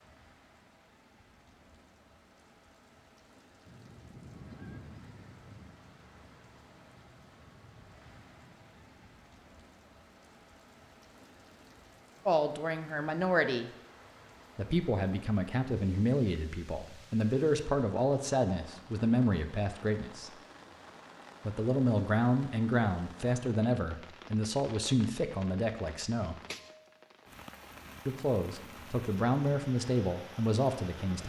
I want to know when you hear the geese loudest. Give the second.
5 s.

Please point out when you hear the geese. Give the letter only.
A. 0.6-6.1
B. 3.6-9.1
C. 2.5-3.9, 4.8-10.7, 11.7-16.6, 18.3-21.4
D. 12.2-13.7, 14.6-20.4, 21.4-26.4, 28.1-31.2
B.